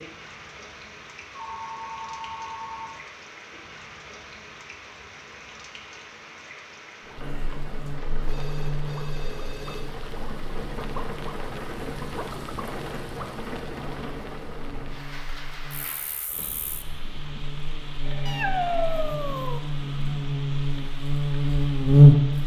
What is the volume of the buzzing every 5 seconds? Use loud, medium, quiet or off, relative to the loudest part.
off, quiet, quiet, quiet, loud.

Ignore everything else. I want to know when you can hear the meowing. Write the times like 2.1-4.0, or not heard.
18.2-19.6.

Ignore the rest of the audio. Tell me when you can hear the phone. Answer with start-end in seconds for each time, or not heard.
1.3-3.0, 8.2-9.9, 18.0-18.9.